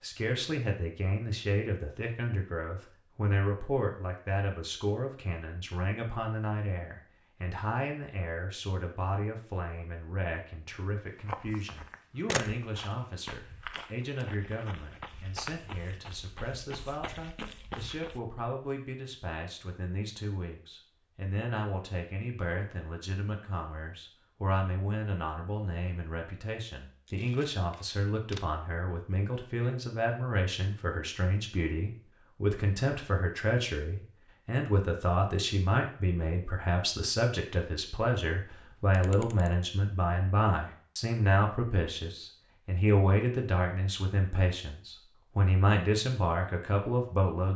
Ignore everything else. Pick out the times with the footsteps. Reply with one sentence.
The footsteps can be heard from 11.1 to 18.2 s.